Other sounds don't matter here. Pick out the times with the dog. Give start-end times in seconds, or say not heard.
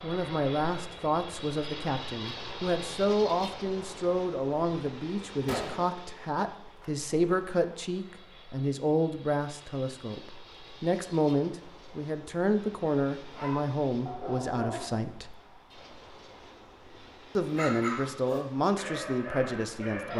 13.3-15.1, 17.4-20.1.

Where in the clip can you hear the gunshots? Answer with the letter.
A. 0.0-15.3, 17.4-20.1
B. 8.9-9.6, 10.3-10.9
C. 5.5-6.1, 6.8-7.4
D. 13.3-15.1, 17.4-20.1
C.